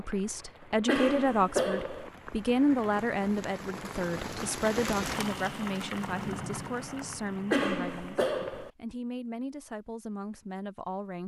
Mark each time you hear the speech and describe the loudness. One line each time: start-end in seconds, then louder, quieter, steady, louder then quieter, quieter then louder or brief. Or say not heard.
0.0-11.2 quieter.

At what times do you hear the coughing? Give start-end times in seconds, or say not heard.
0.8-2.1, 7.5-8.7.